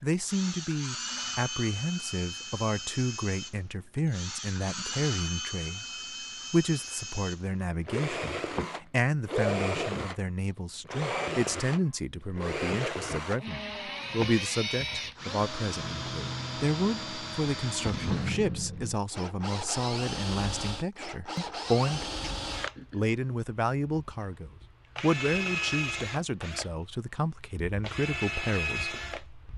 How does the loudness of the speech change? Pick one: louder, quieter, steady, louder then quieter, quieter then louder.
steady.